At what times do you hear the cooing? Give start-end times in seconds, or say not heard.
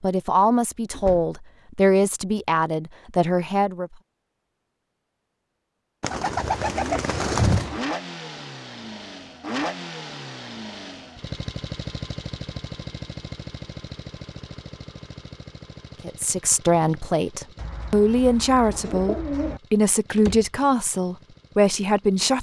6.0-7.7, 17.6-19.6.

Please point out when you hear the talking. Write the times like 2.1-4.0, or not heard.
0.0-3.9, 16.0-22.3.